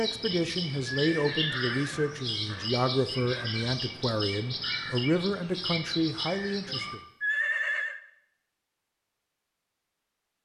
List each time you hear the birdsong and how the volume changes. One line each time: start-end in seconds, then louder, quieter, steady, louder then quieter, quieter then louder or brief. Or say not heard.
0.0-7.0 steady.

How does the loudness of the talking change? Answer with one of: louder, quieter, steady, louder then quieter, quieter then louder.
steady.